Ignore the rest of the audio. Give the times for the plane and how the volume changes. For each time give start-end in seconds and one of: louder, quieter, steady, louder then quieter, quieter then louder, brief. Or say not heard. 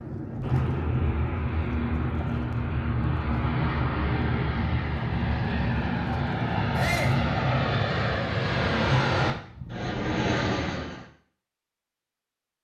0.0-11.1 steady.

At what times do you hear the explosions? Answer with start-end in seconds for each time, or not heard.
not heard.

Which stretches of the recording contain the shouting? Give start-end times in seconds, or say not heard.
6.8-7.2.